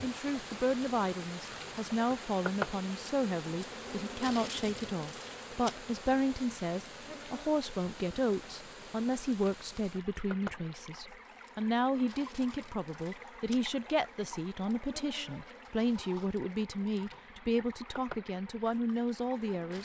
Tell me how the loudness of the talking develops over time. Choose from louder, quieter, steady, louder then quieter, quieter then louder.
steady.